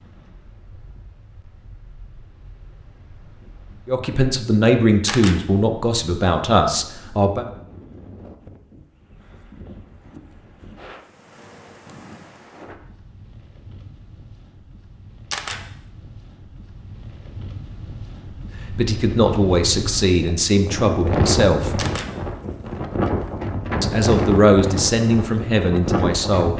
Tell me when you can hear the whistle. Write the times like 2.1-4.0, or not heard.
not heard.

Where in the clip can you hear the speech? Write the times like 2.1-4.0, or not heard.
3.9-7.5, 18.7-21.9, 23.8-26.5.